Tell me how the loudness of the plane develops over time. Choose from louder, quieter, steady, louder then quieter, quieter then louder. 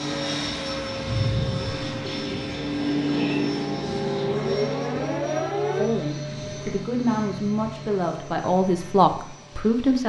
quieter.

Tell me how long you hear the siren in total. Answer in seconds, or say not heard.
3 s.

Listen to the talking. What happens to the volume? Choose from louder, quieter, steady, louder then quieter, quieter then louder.
louder.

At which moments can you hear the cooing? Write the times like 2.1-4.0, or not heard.
1.6-3.6.